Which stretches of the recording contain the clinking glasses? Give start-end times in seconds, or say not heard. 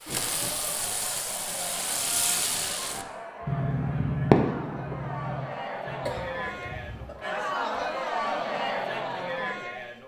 not heard.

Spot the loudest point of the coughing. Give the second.
6 s.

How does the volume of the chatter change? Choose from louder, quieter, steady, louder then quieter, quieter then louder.
louder.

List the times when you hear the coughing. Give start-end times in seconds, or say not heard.
0.1-0.6, 6.0-7.2.